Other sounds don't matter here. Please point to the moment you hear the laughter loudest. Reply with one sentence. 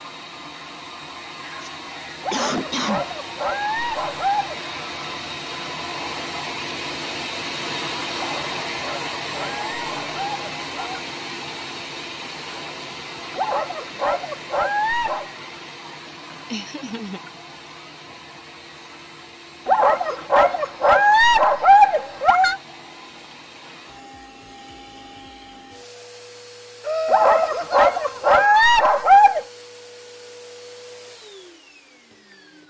The loudest moment of the laughter is at 27 seconds.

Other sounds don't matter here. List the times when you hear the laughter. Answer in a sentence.
The laughter can be heard from 1.6 to 3.0 s, from 16.5 to 17.2 s and from 26.8 to 29.1 s.